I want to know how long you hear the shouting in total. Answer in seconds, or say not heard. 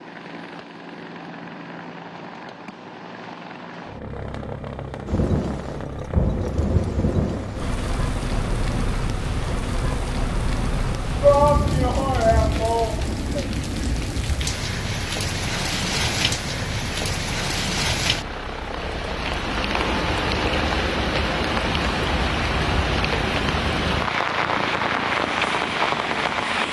2 s.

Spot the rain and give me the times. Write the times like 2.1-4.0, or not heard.
5.0-26.6.